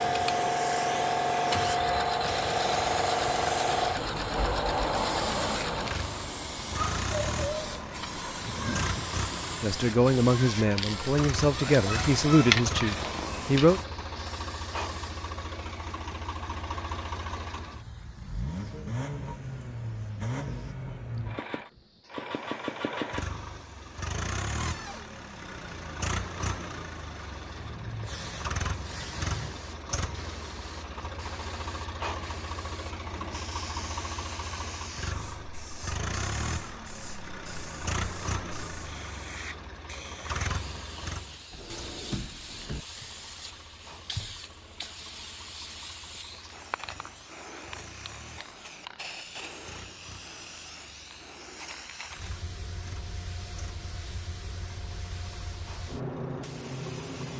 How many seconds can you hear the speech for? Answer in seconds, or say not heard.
4 s.